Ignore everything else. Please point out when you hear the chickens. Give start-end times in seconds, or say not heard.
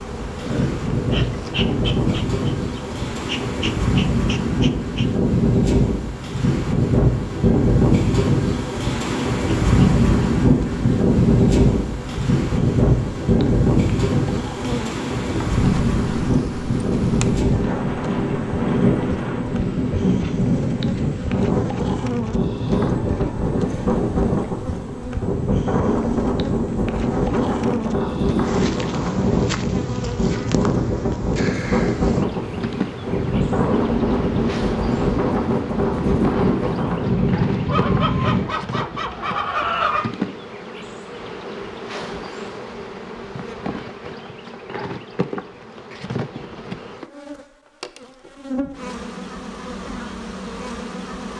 37.6-40.1.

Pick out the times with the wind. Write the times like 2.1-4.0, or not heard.
0.0-38.5.